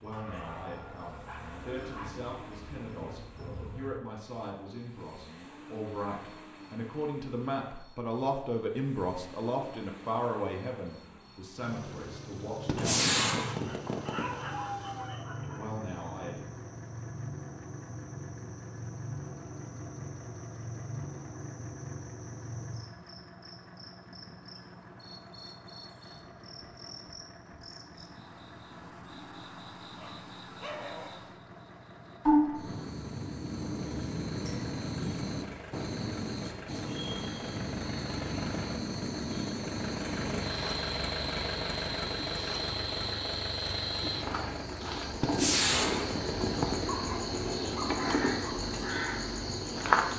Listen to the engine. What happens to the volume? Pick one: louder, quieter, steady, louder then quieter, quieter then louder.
louder.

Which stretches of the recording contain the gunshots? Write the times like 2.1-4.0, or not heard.
12.7-14.3, 45.2-46.8.